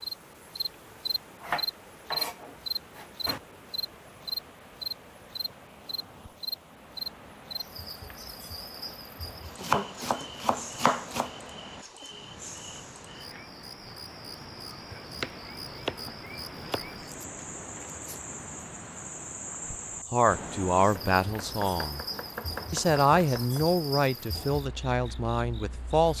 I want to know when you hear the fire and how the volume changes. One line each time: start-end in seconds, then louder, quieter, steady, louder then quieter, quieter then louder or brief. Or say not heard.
not heard.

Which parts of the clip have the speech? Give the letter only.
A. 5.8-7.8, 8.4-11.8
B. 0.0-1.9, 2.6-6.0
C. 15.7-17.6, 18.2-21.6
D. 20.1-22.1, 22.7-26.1
D.